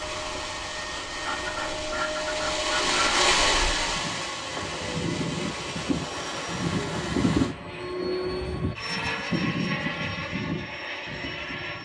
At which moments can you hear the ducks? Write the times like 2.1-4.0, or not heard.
1.2-3.2.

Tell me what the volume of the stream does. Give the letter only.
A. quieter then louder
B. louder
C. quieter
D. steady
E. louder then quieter
E.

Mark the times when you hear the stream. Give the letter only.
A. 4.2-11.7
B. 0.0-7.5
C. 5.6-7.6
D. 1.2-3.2
B.